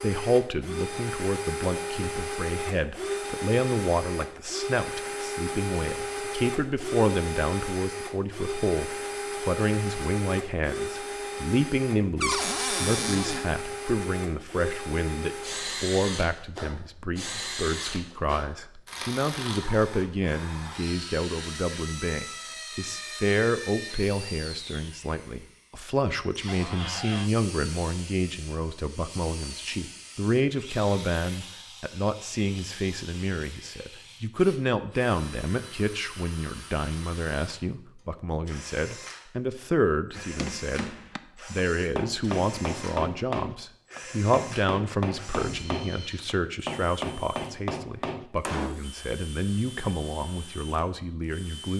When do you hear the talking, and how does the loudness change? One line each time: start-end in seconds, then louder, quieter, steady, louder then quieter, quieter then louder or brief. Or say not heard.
0.0-51.7 steady.